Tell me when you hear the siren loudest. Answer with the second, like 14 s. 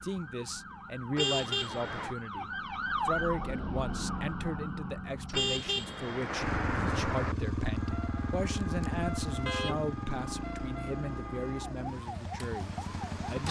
3 s.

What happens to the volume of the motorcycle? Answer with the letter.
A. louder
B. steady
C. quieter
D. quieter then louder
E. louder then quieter
C.